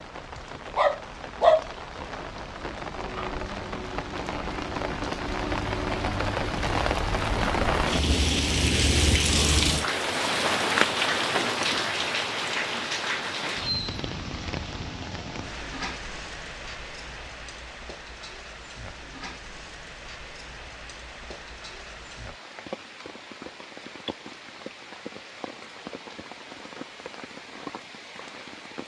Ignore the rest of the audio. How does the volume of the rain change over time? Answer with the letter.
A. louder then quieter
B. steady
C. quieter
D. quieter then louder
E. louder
A.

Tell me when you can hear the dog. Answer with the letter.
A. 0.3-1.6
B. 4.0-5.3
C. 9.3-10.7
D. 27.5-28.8
A.